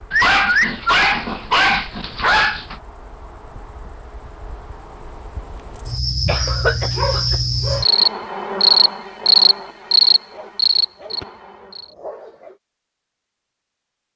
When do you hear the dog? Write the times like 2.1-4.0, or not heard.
0.1-2.8, 6.5-7.8, 10.3-12.6.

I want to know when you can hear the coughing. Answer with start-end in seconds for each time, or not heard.
6.2-7.4.